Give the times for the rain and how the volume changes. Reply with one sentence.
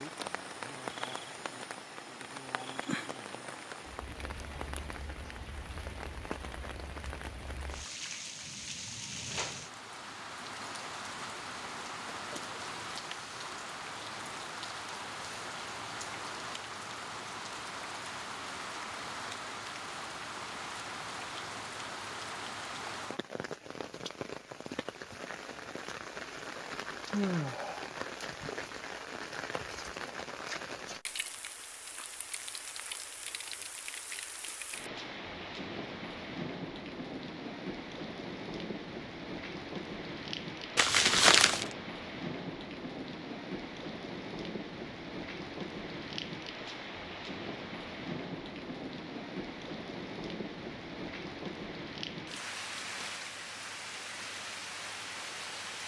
The rain can be heard from 0.0 to 55.8 s, at a steady volume.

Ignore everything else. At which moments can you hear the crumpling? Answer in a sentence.
The crumpling can be heard from 40.8 to 41.7 s.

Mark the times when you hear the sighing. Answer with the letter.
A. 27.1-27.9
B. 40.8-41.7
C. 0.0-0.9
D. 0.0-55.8
A.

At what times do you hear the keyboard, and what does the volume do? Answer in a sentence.
The keyboard can't be heard in this clip.